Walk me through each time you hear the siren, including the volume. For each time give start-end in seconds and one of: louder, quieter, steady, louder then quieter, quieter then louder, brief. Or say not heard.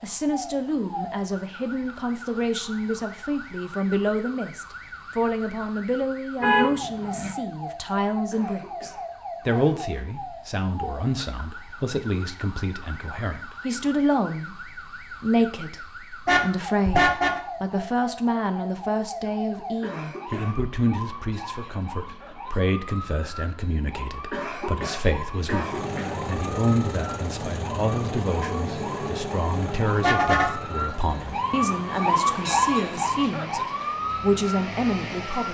0.0-35.4 louder.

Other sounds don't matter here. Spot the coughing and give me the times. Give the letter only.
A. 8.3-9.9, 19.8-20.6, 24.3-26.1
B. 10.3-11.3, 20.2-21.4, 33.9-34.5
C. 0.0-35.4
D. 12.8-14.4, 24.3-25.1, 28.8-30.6
A.